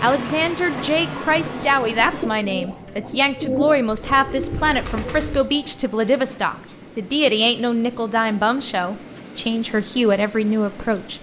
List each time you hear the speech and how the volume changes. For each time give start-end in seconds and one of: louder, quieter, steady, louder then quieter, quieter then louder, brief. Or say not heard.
0.0-11.1 steady.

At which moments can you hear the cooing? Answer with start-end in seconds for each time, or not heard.
0.2-5.4.